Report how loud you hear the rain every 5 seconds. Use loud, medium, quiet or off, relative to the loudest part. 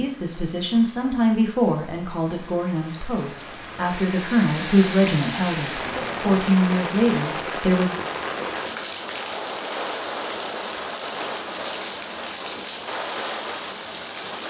medium, loud, loud.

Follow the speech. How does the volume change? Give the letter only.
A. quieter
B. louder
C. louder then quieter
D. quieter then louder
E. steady
D.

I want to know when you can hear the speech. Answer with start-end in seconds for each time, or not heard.
0.0-7.9.